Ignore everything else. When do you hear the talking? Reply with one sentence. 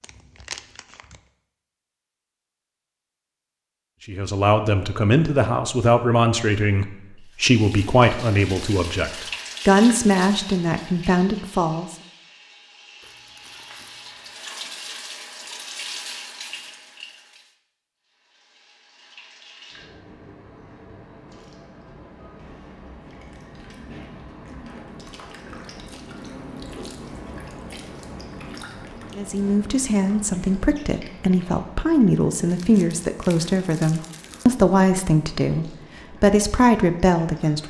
The talking can be heard from 4.0 to 11.9 s and from 29.1 to 37.6 s.